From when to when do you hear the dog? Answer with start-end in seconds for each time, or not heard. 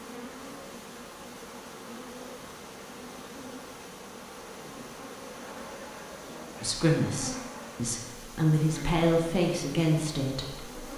5.3-7.8.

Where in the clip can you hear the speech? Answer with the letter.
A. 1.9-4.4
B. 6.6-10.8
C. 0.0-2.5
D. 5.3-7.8
B.